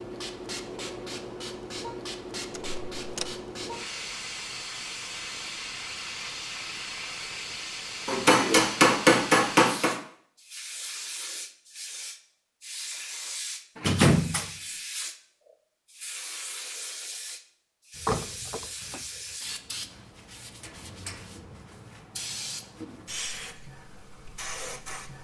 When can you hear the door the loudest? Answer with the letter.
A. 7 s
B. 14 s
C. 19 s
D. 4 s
B.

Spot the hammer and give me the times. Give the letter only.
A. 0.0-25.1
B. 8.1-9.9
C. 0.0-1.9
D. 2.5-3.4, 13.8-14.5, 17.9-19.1
B.